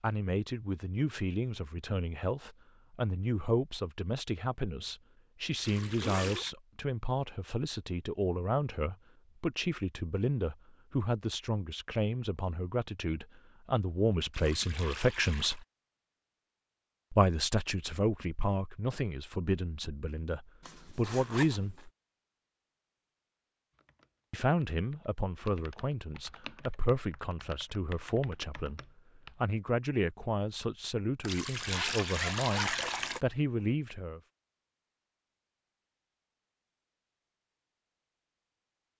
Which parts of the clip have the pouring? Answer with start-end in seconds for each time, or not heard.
5.6-6.5, 14.3-15.7, 31.2-33.2.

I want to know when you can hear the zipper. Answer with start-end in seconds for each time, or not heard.
5.7-6.5, 20.6-21.9, 31.4-32.7.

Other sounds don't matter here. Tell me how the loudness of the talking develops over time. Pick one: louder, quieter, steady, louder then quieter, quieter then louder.
steady.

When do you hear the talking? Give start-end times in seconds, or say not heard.
0.0-15.6, 17.1-21.9, 24.3-34.2.